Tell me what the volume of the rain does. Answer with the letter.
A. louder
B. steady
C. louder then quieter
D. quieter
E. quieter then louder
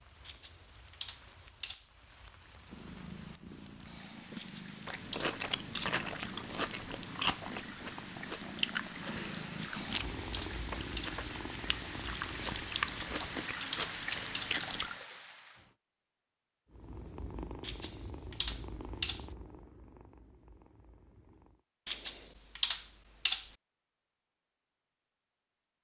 A.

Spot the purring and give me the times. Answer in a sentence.
You can hear the purring from 2.5 to 13.4 s and from 16.7 to 21.6 s.